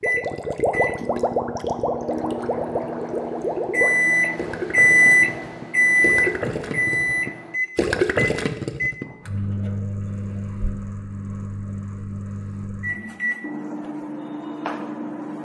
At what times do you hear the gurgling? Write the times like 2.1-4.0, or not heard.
0.0-9.1.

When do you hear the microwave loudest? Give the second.
5 s.